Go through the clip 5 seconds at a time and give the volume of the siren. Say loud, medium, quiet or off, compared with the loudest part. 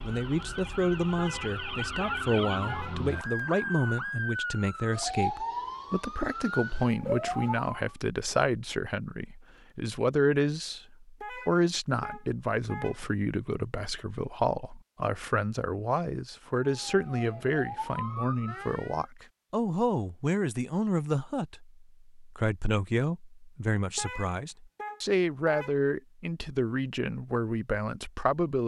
loud, loud, off, medium, off, off.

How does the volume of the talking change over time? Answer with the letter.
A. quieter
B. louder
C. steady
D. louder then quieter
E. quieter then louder
C.